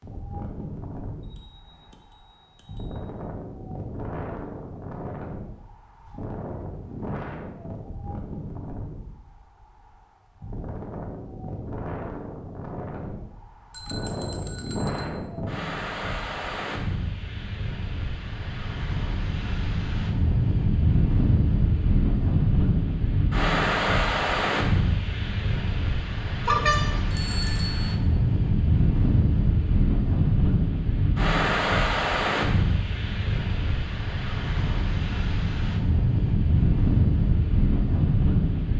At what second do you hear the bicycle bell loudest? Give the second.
27 s.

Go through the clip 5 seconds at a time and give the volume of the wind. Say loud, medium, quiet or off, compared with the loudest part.
quiet, quiet, medium, medium, loud, loud, loud, loud.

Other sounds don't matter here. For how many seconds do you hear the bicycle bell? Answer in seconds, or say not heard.
5 s.